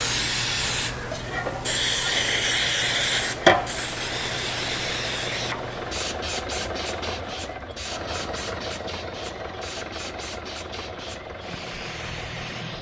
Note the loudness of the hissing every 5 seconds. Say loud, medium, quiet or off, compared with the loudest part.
loud, medium, quiet.